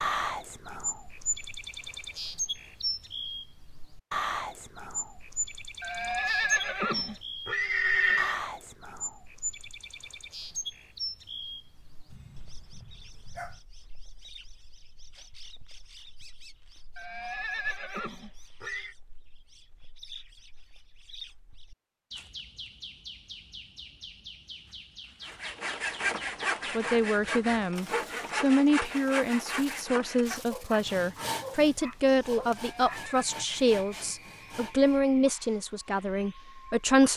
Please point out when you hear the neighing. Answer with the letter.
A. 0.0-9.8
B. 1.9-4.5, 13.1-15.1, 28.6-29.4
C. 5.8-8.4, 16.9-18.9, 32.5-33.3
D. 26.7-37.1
C.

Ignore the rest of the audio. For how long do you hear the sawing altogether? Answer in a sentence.
You can hear the sawing for 10 seconds altogether.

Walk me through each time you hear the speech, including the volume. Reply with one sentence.
You can hear the speech from 26.7 to 37.1 s, at a steady volume.